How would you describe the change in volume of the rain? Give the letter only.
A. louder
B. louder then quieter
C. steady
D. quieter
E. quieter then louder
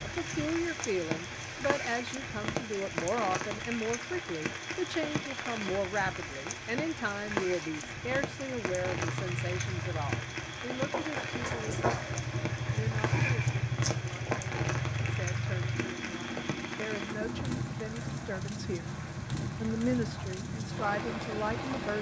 C.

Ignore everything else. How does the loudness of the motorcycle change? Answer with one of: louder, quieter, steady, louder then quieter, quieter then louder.
louder then quieter.